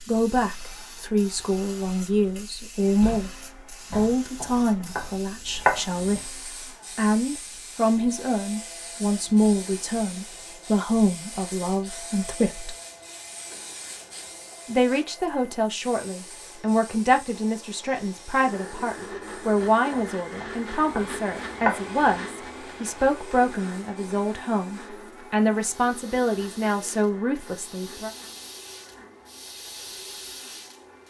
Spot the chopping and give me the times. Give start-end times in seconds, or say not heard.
3.9-6.2, 19.9-21.9.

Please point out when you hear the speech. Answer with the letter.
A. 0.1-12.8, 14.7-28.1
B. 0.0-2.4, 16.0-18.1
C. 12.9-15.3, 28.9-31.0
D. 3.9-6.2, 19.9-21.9
A.